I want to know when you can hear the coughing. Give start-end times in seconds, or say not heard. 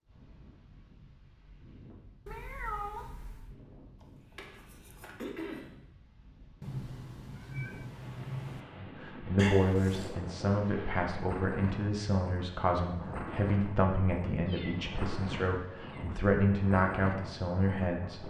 4.0-5.7, 9.3-10.2.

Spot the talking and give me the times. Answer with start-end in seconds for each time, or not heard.
8.8-18.2.